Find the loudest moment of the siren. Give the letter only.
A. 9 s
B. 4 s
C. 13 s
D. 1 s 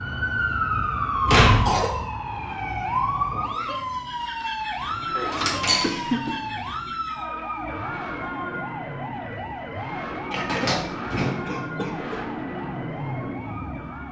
D.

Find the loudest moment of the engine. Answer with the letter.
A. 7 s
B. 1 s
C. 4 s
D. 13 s
D.